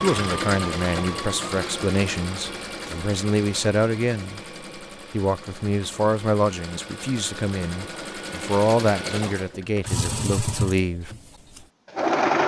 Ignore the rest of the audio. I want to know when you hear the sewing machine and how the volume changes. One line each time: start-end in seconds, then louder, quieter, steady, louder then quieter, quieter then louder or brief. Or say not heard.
0.0-12.4 quieter then louder.